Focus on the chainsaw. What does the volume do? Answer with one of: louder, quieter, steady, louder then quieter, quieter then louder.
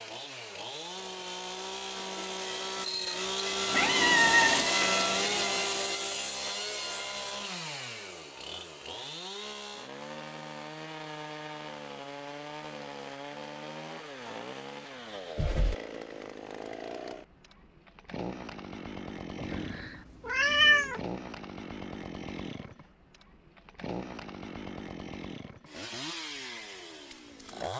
quieter.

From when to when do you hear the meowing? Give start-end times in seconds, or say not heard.
3.7-4.7, 15.3-15.8, 19.4-21.0.